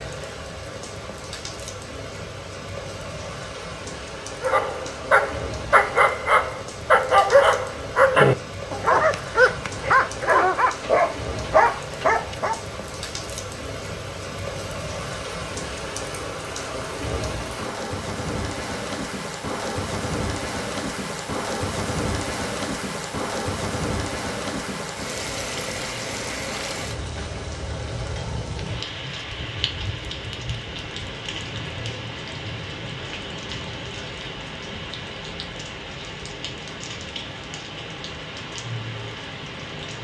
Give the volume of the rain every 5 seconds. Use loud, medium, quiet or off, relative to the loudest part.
medium, medium, medium, loud, loud, loud, medium, medium.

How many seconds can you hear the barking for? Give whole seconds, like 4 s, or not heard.
8 s.